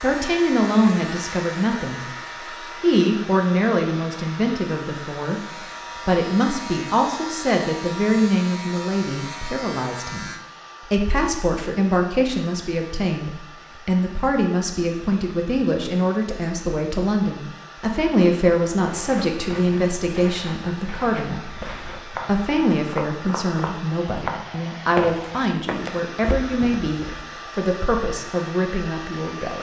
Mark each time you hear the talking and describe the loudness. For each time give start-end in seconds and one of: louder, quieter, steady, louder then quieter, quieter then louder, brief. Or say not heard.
0.0-29.5 steady.